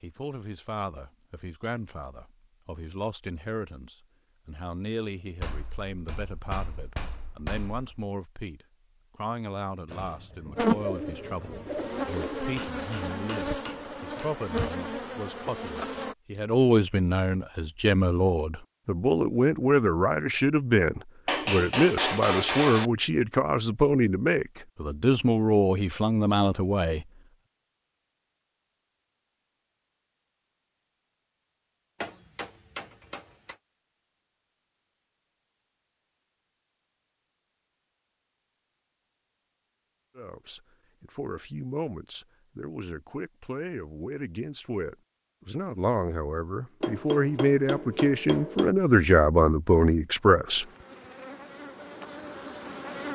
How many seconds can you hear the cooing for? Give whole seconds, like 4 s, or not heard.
3 s.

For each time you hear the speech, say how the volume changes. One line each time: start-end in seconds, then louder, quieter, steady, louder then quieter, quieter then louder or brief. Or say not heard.
0.0-27.1 louder
40.1-50.6 louder.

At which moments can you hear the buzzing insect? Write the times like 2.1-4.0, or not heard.
10.6-16.1, 50.5-53.1.